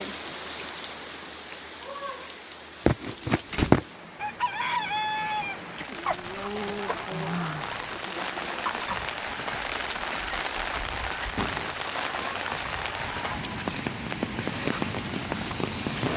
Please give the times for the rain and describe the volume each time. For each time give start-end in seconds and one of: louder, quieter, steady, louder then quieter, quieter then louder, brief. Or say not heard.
0.0-16.1 louder.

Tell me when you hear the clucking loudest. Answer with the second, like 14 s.
4 s.